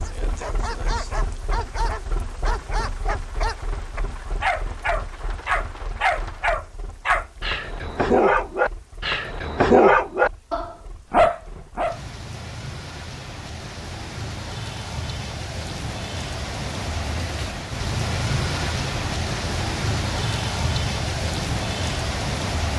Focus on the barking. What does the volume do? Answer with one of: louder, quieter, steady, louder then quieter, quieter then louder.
louder.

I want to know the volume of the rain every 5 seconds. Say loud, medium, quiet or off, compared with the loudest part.
medium, quiet, medium, loud, loud.